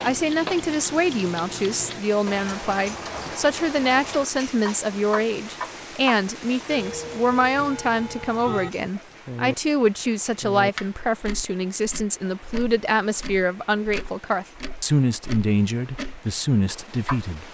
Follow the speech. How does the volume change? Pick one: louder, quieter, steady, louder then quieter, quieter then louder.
steady.